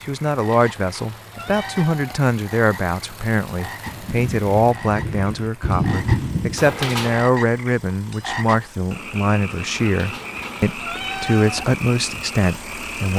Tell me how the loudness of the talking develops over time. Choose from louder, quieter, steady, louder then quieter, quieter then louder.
steady.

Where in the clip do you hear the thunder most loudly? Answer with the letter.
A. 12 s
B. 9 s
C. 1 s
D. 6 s
D.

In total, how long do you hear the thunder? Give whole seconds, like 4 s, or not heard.
3 s.